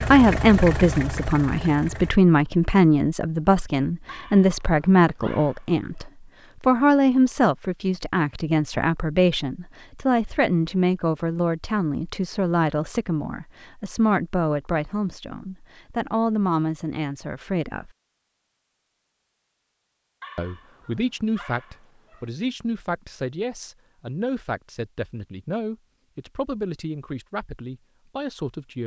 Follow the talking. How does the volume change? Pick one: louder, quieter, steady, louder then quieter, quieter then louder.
quieter.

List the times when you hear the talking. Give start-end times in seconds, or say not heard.
0.1-17.9, 20.4-28.8.